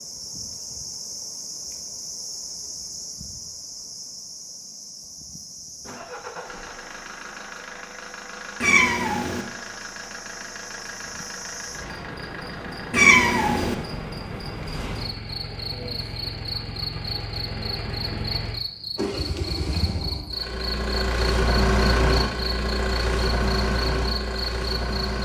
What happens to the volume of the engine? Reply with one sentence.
The loudness of the engine goes up.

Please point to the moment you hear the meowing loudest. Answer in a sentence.
The loudest moment of the meowing is at 13 seconds.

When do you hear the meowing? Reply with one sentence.
You can hear the meowing from 8.6 to 9.4 s and from 12.9 to 13.8 s.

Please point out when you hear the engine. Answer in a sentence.
The engine can be heard from 5.8 to 25.2 s.